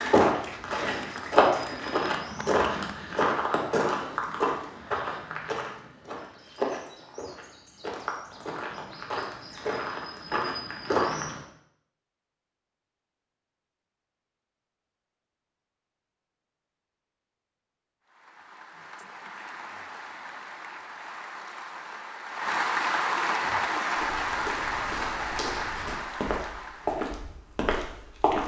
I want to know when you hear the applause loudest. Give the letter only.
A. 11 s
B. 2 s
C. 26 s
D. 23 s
D.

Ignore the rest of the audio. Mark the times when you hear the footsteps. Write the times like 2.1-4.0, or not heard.
0.0-11.4, 23.4-28.4.